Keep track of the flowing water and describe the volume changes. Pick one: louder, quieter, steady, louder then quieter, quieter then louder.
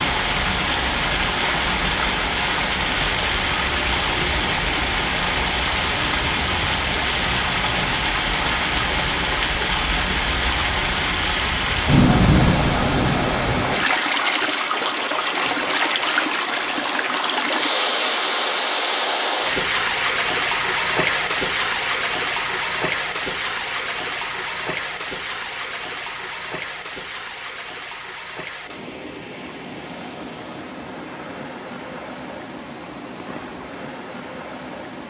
quieter.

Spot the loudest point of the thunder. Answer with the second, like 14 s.
12 s.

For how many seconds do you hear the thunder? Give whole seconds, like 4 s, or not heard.
2 s.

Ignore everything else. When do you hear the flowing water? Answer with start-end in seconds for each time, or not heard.
0.0-35.0.